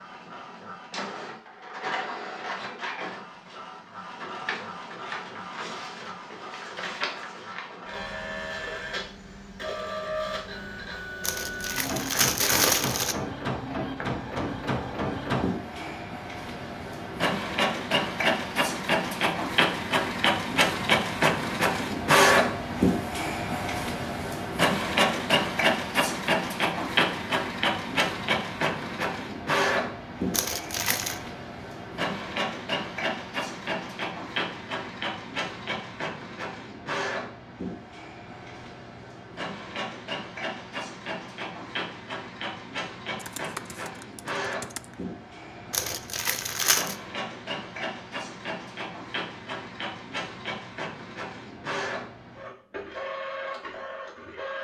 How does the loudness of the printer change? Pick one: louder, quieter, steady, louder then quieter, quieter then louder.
louder then quieter.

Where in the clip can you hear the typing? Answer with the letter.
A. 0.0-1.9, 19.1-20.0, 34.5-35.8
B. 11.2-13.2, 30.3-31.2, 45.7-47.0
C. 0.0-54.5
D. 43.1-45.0
D.